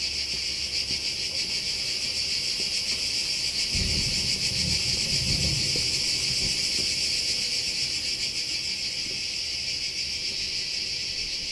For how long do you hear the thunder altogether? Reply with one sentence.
The thunder can be heard for 3 seconds in total.